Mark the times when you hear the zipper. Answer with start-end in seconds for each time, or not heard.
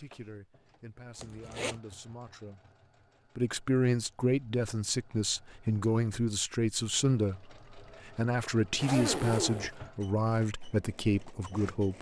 1.1-1.8, 8.8-9.7.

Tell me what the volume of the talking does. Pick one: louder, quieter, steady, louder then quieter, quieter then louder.
louder.